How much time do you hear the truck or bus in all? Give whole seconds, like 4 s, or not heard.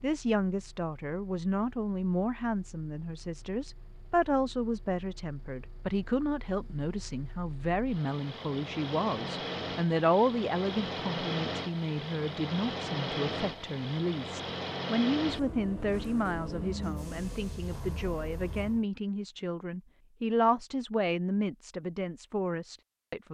19 s.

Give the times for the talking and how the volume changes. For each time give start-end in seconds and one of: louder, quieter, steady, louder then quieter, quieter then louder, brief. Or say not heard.
0.0-23.2 steady.